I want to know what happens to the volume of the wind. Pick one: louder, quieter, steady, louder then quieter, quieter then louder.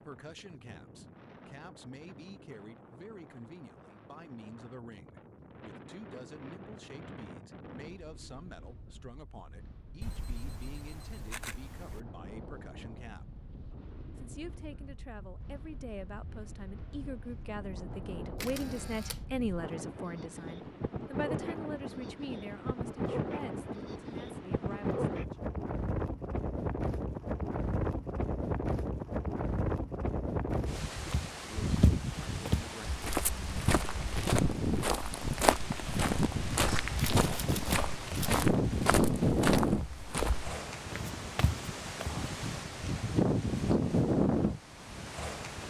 louder.